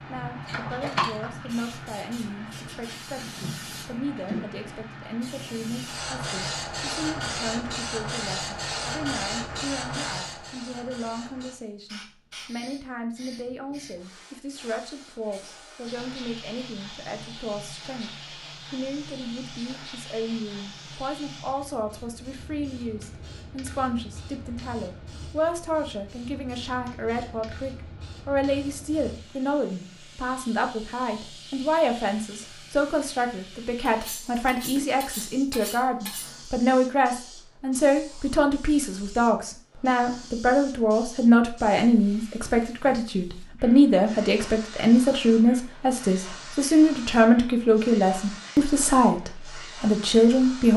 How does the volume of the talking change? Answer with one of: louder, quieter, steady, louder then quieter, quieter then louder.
louder.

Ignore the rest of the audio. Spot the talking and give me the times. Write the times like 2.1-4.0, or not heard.
0.1-50.7.